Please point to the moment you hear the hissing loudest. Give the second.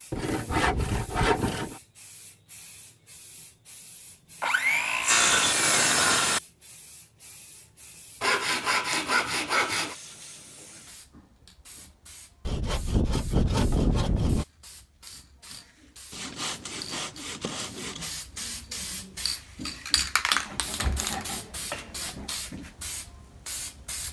20 s.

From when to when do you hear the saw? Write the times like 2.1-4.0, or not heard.
0.1-1.8, 4.4-6.4, 8.2-9.9, 12.4-14.4, 16.1-18.1, 20.3-22.3.